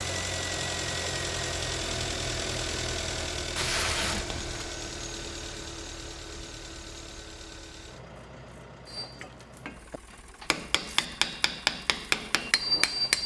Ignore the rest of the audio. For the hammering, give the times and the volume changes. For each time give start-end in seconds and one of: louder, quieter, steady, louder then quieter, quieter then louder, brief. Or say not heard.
8.8-13.2 louder.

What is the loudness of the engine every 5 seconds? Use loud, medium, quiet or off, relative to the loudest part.
loud, medium, quiet.